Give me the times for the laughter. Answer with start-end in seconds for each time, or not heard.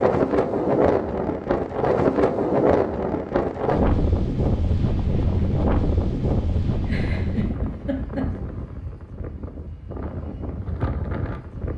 6.8-8.3.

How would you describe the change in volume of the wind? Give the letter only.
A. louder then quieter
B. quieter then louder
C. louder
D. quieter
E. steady
D.